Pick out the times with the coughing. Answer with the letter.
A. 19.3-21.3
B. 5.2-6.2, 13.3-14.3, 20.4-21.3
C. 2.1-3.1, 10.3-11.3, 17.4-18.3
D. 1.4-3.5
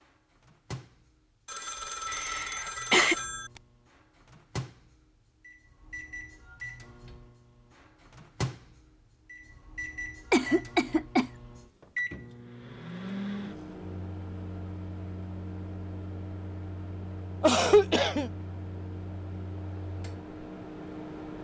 C.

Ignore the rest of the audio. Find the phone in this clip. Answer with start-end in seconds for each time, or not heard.
1.4-3.5.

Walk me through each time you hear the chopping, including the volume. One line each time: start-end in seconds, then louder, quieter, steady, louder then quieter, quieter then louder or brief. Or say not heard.
not heard.